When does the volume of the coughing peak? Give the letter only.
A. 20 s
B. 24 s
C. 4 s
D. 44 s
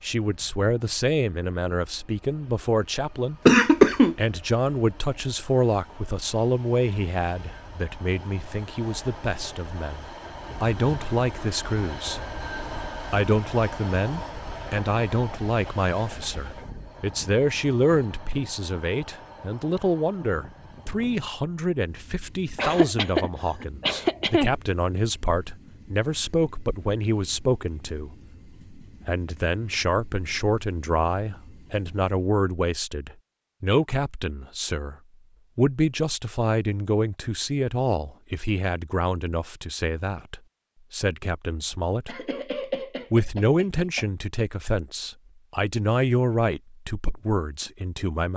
C.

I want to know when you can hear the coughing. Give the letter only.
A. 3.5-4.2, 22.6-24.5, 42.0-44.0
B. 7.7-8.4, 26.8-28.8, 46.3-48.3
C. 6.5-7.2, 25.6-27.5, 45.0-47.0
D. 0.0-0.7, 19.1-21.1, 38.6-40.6
A.